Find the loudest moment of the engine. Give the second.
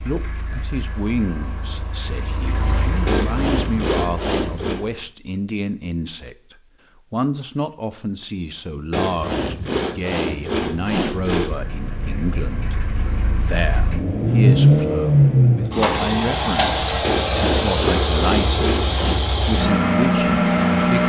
15 s.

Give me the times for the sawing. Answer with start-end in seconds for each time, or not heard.
3.0-4.8, 8.9-11.6, 17.0-19.2.